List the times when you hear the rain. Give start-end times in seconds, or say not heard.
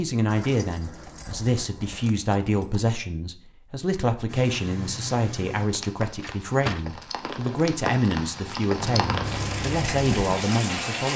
4.2-11.1.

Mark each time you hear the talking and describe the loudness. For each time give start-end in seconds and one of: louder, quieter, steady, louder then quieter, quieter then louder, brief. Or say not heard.
0.0-11.1 steady.